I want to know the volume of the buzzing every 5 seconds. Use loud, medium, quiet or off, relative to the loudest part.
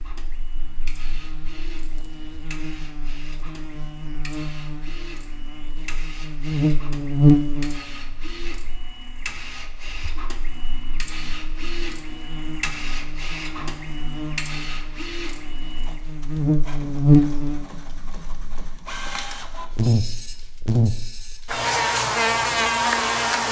quiet, loud, quiet, loud, loud.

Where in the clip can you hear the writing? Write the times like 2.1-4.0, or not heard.
not heard.